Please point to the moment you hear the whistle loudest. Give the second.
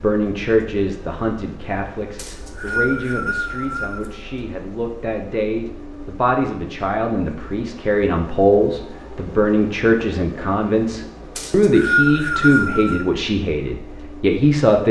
12 s.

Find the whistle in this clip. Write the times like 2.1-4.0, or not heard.
2.1-4.1, 11.3-13.1.